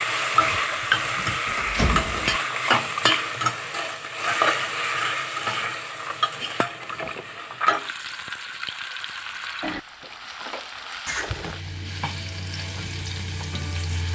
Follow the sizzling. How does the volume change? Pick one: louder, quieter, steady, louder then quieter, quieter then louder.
quieter.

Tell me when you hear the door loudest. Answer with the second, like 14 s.
2 s.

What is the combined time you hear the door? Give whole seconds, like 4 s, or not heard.
4 s.